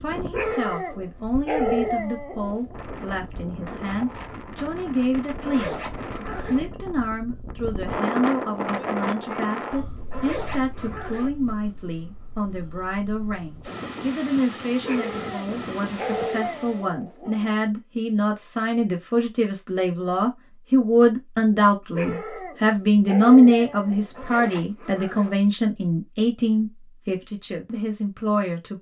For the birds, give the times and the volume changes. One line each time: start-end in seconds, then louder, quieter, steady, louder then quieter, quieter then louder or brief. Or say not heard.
not heard.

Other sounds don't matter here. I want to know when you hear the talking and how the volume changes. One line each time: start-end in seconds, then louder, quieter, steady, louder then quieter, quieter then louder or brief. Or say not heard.
0.0-28.7 louder.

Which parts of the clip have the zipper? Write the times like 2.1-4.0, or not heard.
5.3-6.6, 9.9-11.3, 24.0-25.4.